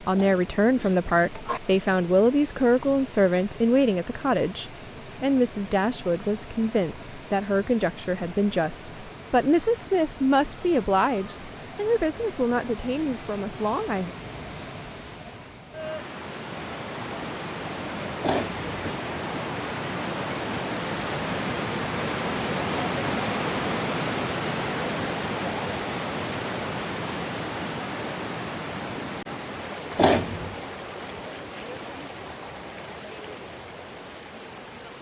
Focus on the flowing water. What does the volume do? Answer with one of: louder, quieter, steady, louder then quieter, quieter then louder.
louder then quieter.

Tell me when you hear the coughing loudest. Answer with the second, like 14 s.
30 s.